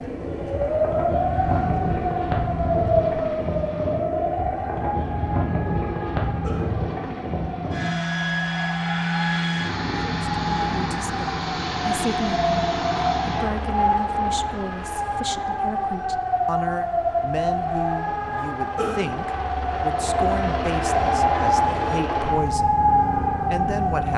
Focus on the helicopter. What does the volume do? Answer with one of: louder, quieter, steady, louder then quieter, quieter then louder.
quieter then louder.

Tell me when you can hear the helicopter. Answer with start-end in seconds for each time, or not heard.
0.0-24.1.